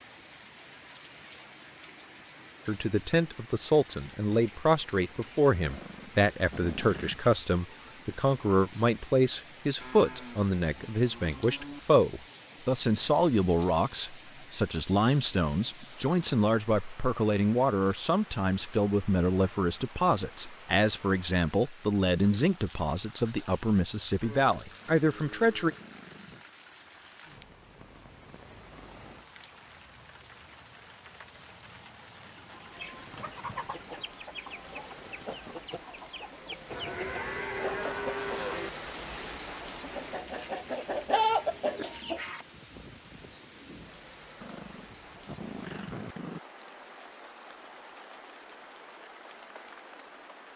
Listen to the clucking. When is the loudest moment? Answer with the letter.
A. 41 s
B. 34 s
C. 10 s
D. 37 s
A.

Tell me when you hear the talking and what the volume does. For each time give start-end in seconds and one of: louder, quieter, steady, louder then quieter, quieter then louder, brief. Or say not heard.
2.6-25.7 steady.